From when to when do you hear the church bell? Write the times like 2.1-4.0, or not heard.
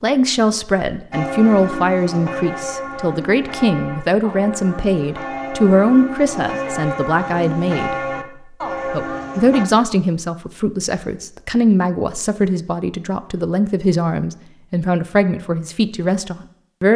1.1-9.7.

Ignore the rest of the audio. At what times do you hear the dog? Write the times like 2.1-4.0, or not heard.
not heard.